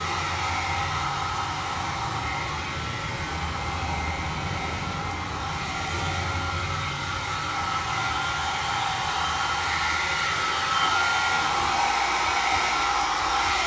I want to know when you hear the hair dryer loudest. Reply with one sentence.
The loudest moment of the hair dryer is at 11 seconds.